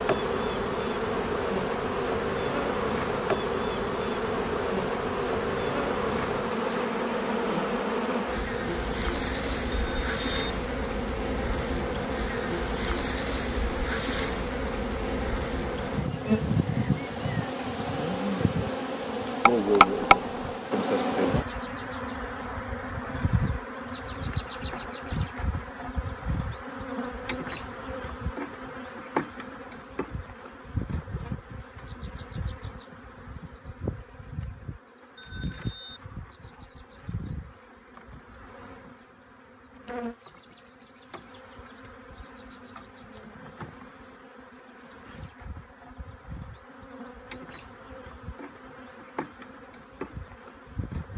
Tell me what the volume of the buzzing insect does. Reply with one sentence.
The volume of the buzzing insect goes down.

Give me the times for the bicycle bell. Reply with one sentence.
You can hear the bicycle bell from 9.7 to 10.5 s, from 19.4 to 20.6 s and from 35.1 to 36.0 s.